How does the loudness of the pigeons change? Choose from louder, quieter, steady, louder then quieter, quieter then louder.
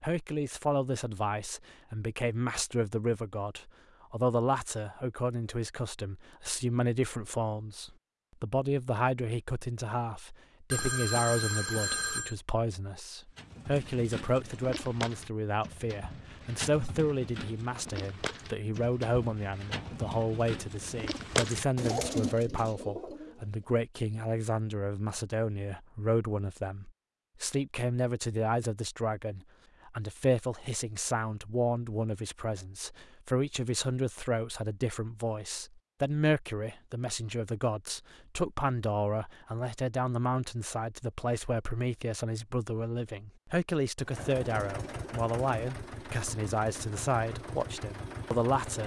louder.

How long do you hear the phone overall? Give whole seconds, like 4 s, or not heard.
2 s.